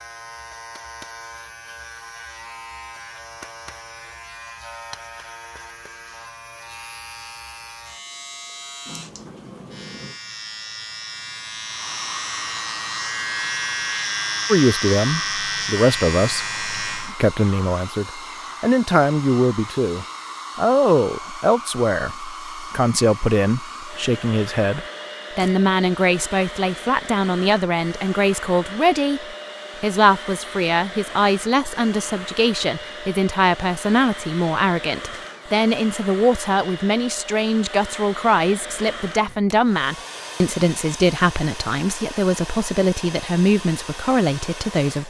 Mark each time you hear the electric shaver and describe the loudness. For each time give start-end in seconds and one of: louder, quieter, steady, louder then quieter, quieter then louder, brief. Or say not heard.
0.0-17.1 louder.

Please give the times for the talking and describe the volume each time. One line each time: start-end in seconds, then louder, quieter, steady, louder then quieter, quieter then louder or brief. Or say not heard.
14.5-45.0 steady.